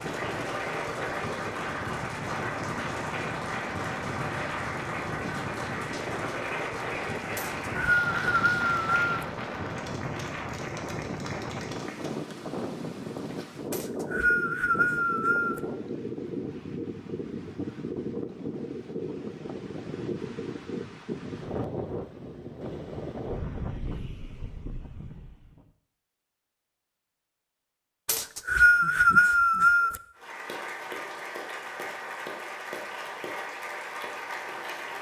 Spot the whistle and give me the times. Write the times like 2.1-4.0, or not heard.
7.3-9.1, 13.7-15.6, 28.1-30.0.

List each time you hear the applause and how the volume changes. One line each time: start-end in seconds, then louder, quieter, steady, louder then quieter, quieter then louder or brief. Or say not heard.
0.0-12.2 quieter
30.1-34.9 steady.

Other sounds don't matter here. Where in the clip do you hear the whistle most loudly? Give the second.
29 s.